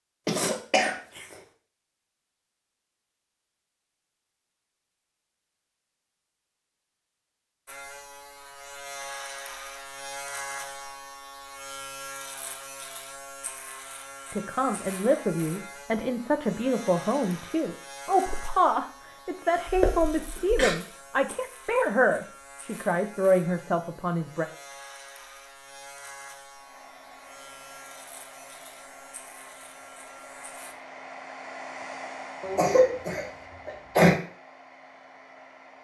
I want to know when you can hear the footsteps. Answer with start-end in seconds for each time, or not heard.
not heard.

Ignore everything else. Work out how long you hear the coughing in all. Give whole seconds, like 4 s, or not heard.
4 s.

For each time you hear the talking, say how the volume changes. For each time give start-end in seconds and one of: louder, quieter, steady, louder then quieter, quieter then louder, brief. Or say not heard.
14.3-24.4 steady.